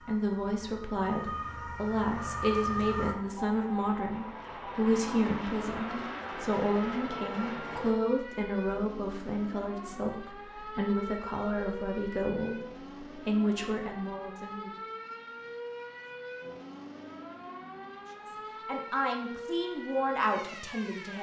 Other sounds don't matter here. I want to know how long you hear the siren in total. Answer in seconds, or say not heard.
21 s.